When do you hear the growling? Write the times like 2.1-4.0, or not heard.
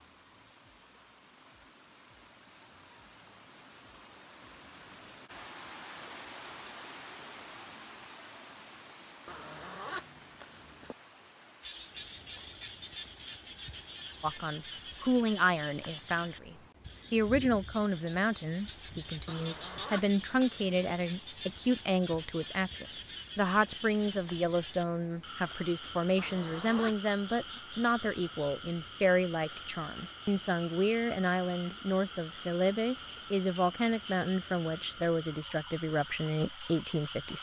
not heard.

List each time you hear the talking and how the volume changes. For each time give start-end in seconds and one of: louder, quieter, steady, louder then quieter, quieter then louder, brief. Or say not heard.
14.2-37.3 steady.